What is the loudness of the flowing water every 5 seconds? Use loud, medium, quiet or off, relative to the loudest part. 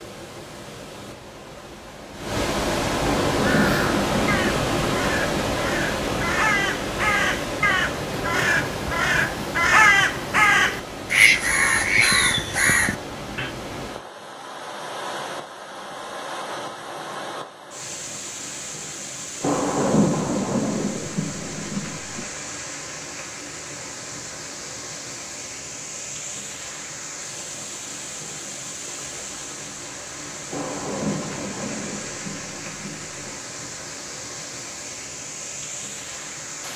loud, loud, medium, medium, medium, medium, medium, medium.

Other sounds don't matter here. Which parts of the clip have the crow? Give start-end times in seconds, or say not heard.
3.4-13.5.